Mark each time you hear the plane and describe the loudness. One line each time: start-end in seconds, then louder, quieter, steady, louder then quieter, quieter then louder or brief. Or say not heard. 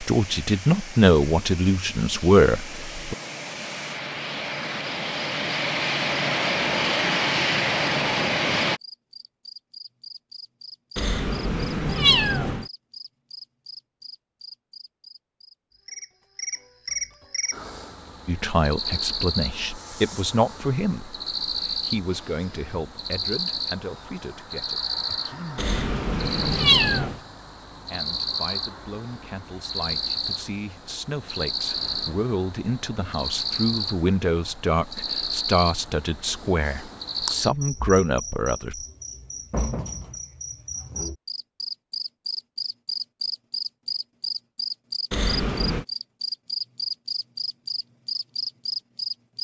0.0-8.8 louder.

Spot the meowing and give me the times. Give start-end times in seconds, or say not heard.
10.9-12.7, 25.6-27.1, 45.1-45.9.